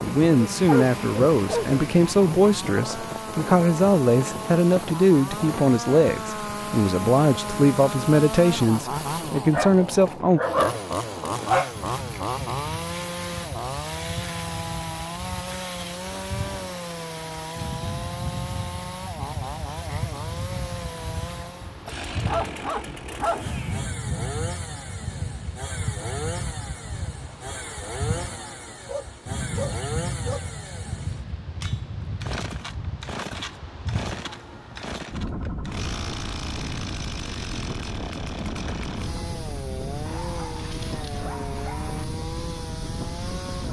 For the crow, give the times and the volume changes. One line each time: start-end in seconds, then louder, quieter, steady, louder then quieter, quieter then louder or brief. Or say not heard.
not heard.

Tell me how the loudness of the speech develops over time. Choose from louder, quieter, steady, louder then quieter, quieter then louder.
steady.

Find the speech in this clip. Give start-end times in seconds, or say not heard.
0.0-10.4.